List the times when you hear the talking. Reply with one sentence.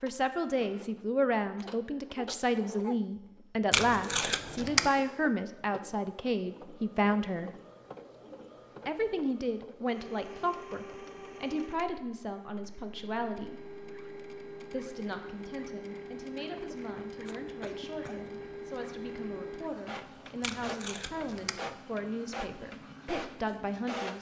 You can hear the talking from 0.0 to 7.5 s, from 8.8 to 13.7 s and from 14.7 to 24.1 s.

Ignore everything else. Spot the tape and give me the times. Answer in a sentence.
The tape can be heard from 3.7 to 4.9 s and from 20.4 to 21.6 s.